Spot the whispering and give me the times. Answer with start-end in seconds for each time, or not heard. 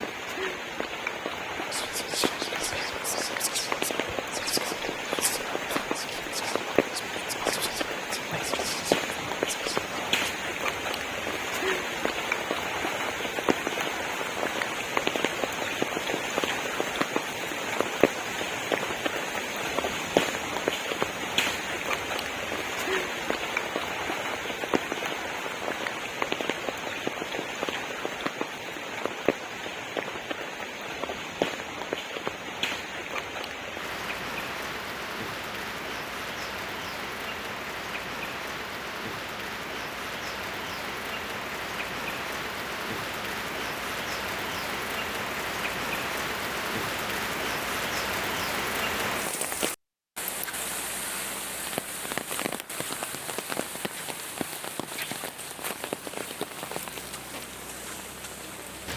1.7-10.2.